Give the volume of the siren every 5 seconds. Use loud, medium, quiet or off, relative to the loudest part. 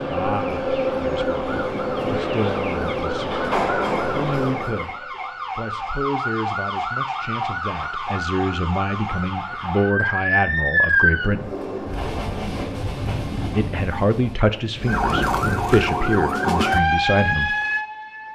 quiet, medium, loud, loud.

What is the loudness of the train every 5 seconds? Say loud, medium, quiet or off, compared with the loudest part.
loud, off, medium, off.